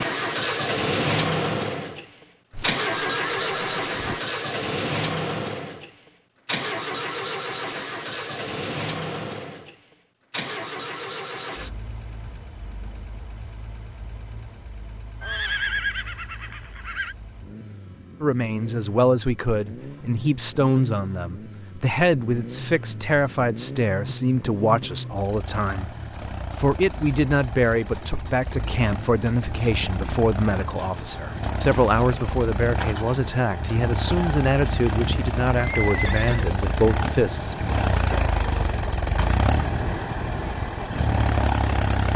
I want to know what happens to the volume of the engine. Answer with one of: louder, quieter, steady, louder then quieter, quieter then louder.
quieter then louder.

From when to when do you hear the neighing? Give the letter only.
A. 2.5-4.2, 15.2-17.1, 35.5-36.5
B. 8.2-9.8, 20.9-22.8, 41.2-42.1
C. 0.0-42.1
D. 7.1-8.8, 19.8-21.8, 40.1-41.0
A.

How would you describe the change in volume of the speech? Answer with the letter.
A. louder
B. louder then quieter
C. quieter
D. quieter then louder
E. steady
E.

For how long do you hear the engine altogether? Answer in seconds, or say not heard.
42 s.